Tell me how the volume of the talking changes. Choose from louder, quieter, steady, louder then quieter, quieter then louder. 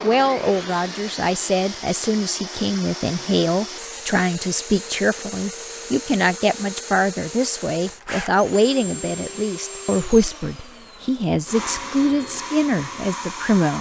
steady.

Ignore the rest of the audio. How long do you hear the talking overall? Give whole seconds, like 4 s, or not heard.
14 s.